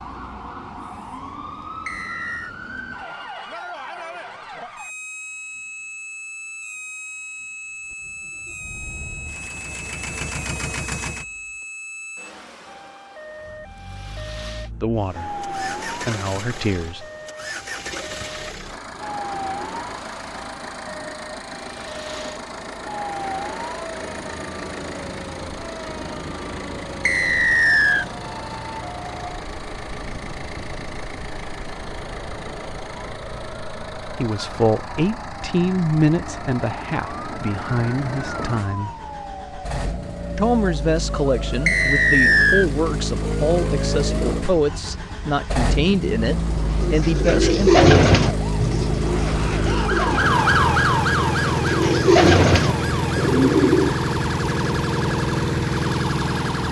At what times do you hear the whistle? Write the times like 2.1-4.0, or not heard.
1.9-2.5, 27.1-28.1, 41.6-42.7.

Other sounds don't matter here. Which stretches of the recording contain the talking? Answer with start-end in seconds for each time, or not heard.
14.8-17.1, 34.1-38.9, 40.4-48.1.